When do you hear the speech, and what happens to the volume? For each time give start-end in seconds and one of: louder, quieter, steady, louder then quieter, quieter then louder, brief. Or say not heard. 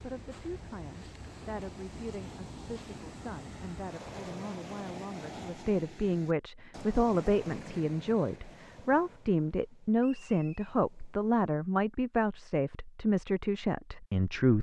0.0-14.5 louder.